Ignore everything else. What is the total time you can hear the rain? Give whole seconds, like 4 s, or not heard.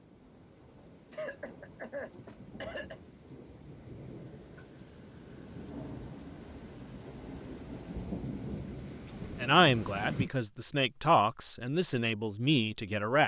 10 s.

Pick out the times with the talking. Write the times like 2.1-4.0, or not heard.
9.4-13.2.